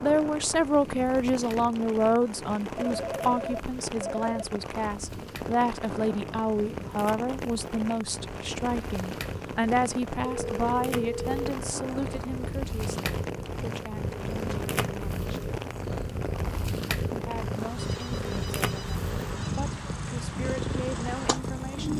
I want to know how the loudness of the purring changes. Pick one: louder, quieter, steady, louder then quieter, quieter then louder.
louder.